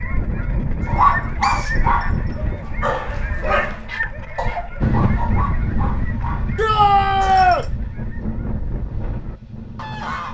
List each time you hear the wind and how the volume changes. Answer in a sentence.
The wind can be heard from 4.8 to 10.3 s, getting quieter.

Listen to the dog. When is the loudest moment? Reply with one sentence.
The volume of the dog peaks at 1 second.